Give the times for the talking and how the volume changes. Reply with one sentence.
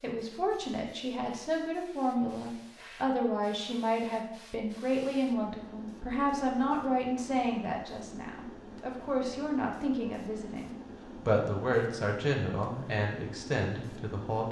You can hear the talking from 0.0 to 14.4 s, at a steady volume.